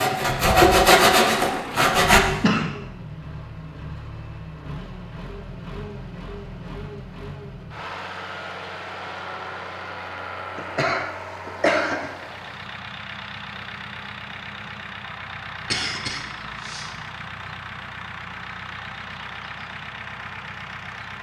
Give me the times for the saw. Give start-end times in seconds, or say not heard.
0.0-2.2.